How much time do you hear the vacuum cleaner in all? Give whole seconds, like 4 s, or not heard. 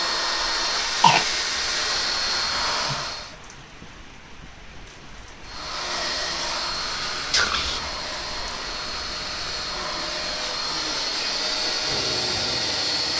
11 s.